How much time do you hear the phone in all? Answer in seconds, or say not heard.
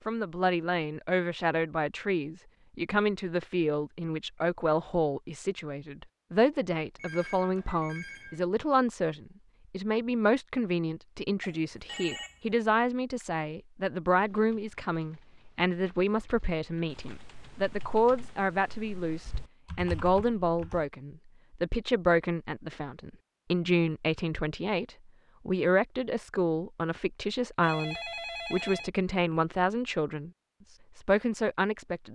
4 s.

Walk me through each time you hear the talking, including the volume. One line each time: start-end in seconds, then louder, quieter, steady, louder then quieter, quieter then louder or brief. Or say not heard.
0.1-30.3 steady
30.9-32.1 brief.